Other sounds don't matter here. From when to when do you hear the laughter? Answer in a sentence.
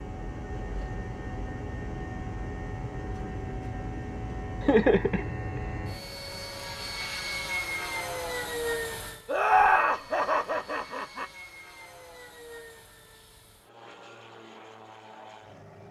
You can hear the laughter from 4.6 to 5.6 s and from 9.2 to 11.2 s.